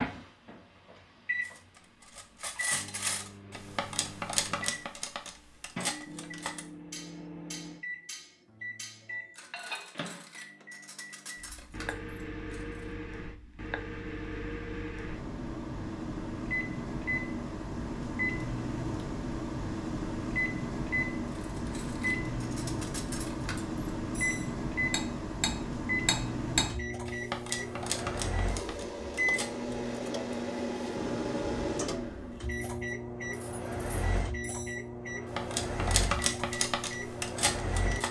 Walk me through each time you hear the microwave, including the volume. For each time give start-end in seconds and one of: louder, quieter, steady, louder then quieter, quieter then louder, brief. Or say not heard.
0.0-38.0 louder.